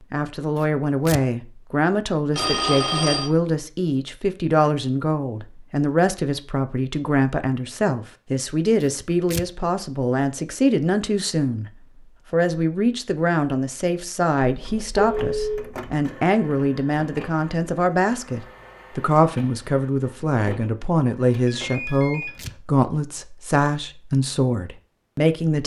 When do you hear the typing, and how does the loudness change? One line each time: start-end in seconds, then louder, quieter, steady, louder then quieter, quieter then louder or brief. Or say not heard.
not heard.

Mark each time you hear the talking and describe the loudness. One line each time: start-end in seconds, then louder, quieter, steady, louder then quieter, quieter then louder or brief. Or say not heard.
0.1-11.7 steady
12.3-25.6 steady.